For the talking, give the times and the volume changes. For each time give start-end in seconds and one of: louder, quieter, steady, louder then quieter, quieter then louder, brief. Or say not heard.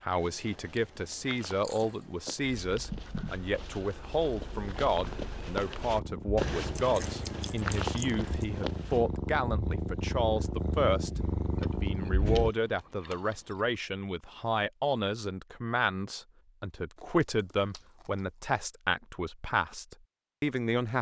0.0-20.9 steady.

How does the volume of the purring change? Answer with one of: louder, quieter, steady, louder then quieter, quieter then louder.
louder.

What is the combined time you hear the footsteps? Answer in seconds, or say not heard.
9 s.